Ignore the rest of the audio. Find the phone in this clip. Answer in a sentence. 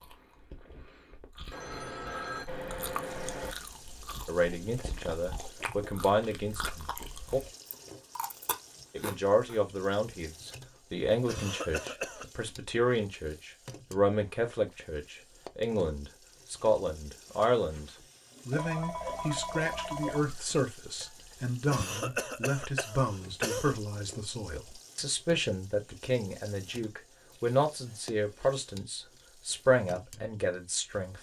The phone can be heard from 1.5 to 3.5 s and from 18.5 to 20.4 s.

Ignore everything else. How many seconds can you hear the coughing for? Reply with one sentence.
The coughing can be heard for 3 seconds in total.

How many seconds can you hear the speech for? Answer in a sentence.
The speech can be heard for 25 seconds in total.